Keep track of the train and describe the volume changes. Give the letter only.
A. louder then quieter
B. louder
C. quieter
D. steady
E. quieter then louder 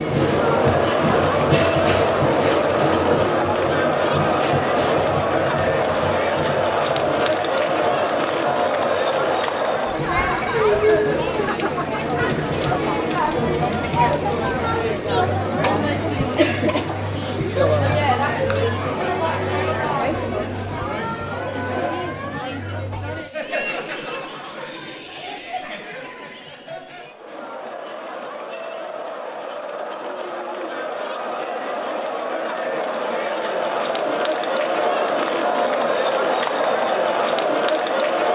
C.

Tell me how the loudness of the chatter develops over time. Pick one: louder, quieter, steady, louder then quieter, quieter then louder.
quieter then louder.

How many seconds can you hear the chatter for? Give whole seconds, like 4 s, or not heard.
38 s.